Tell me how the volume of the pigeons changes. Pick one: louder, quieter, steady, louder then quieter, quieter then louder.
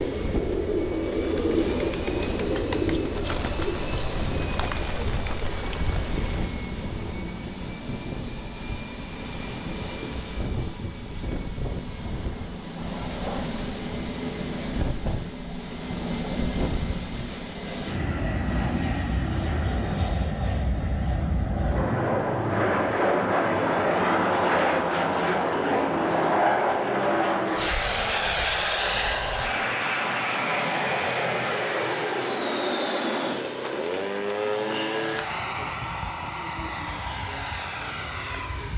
quieter.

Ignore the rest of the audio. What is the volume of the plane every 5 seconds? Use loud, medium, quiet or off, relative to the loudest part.
medium, medium, medium, medium, loud, loud, loud, medium.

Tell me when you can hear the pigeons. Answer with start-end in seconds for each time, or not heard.
0.0-6.5.